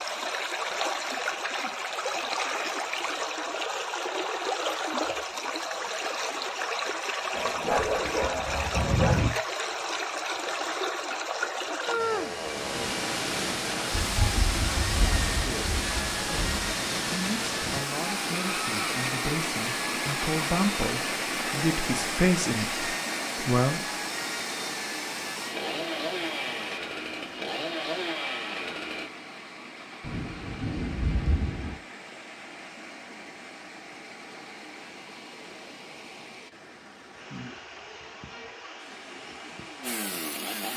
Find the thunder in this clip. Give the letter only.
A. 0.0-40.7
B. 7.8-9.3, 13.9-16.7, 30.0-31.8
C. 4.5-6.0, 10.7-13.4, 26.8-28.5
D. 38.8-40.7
B.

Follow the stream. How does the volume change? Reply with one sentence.
The loudness of the stream goes down.